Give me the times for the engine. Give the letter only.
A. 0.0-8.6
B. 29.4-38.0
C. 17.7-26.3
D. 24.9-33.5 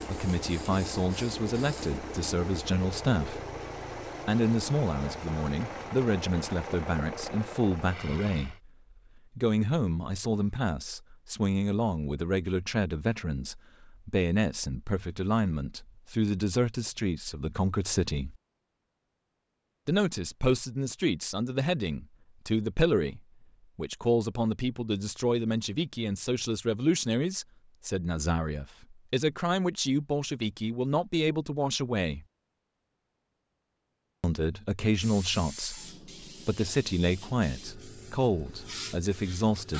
A.